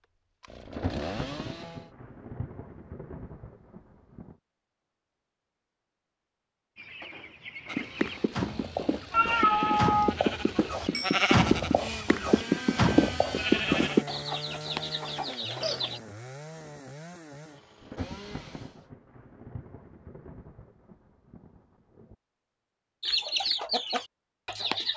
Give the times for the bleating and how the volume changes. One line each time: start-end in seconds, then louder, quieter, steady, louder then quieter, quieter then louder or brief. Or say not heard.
7.7-14.1 louder.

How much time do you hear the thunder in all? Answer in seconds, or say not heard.
8 s.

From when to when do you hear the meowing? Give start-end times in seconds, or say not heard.
9.1-10.2.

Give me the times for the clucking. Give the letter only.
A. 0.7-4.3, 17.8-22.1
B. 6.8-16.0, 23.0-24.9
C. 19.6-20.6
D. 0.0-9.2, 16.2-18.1
B.